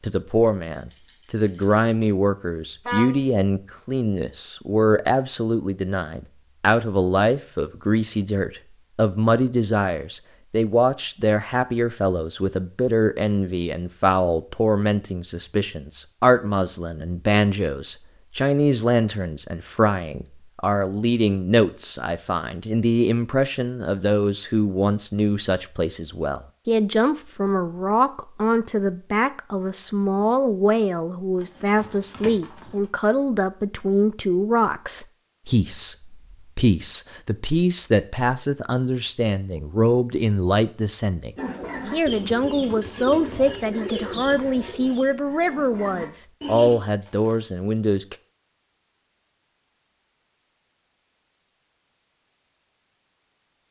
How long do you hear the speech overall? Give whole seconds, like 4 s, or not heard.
48 s.